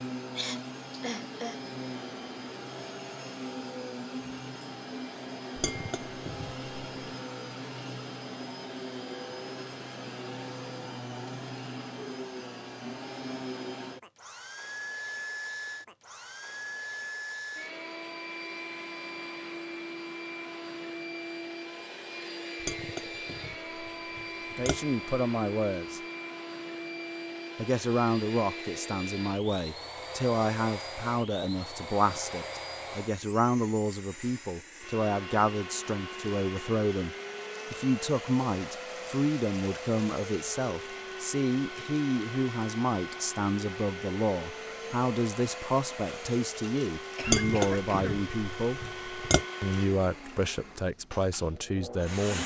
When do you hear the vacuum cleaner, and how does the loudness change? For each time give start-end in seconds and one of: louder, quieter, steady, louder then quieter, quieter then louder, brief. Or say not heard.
0.0-52.4 steady.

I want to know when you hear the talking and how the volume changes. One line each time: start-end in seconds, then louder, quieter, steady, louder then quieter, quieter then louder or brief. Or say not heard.
24.6-26.0 brief
27.6-48.8 steady
49.6-52.4 brief.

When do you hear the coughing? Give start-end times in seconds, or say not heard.
0.3-1.6, 47.1-48.2.